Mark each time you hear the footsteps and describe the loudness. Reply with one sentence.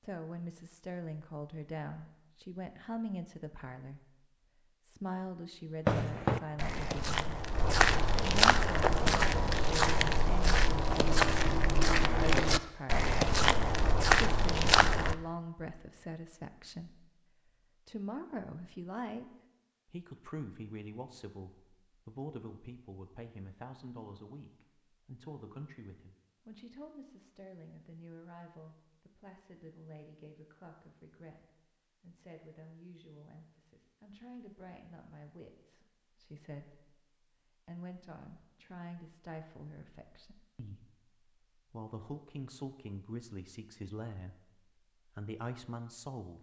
The footsteps can be heard from 5.8 to 15.2 s, at a steady volume.